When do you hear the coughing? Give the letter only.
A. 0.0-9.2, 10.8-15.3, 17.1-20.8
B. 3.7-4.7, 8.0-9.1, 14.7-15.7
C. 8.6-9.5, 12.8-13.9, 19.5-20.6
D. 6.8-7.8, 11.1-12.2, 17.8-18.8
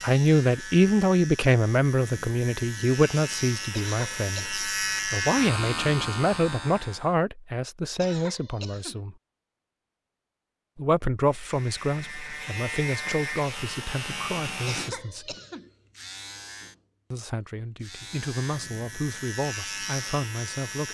B.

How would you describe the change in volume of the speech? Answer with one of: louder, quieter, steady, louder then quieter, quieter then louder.
quieter.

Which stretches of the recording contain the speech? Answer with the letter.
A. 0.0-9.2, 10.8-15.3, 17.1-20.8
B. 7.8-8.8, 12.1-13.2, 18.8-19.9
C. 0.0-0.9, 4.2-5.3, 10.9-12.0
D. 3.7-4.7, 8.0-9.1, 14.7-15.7
A.